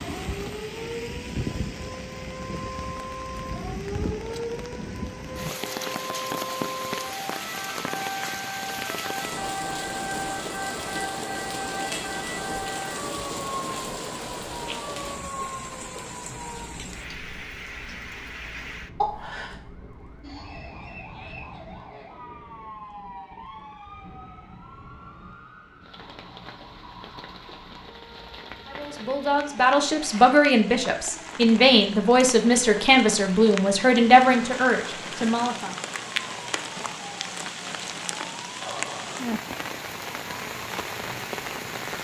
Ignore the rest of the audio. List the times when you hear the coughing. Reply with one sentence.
You can hear the coughing from 19.0 to 19.6 s.